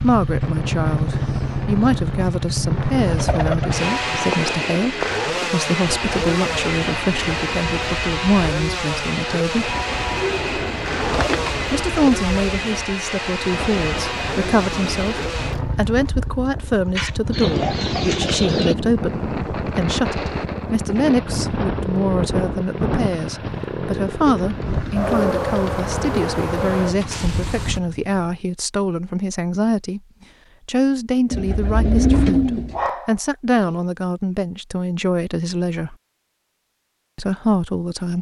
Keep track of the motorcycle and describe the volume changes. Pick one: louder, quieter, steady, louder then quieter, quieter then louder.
quieter.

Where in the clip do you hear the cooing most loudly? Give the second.
32 s.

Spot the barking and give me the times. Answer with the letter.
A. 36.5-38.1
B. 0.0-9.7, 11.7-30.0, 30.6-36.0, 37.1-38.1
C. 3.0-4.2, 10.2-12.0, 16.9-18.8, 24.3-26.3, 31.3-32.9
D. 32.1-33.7
D.